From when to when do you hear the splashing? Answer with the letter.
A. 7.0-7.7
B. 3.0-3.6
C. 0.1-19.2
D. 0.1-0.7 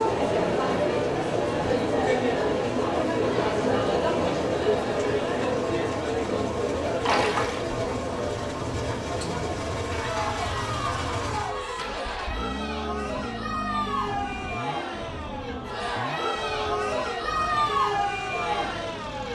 A.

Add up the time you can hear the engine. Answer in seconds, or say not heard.
19 s.